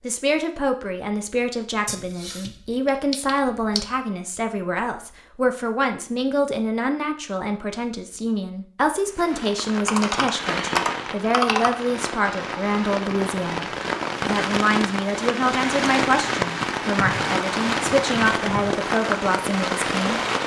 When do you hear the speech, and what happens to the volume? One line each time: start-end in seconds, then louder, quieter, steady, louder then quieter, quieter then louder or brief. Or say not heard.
0.0-20.2 steady.